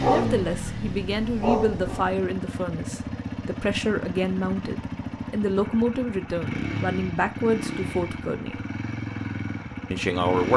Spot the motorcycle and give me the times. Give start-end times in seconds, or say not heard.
0.0-10.5.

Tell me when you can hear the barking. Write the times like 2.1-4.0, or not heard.
0.0-2.1.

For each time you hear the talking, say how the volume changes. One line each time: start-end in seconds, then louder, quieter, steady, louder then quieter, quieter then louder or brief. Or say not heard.
0.1-8.6 steady
9.9-10.5 brief.